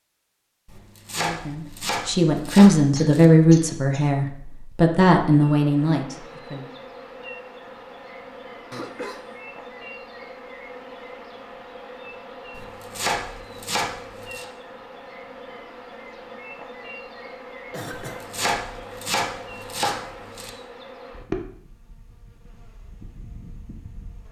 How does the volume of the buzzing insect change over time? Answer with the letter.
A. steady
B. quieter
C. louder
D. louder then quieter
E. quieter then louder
A.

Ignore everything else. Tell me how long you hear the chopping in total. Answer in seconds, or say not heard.
7 s.